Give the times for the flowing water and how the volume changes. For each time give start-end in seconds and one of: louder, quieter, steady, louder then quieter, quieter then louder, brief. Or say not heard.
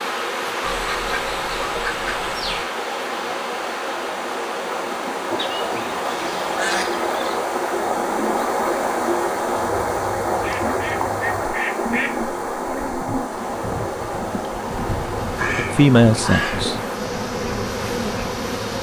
0.0-18.7 louder then quieter.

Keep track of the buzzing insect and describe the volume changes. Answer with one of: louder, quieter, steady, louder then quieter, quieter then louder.
quieter then louder.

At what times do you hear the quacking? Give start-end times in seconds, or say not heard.
0.6-2.6, 5.3-7.4, 10.3-12.2, 15.3-16.9.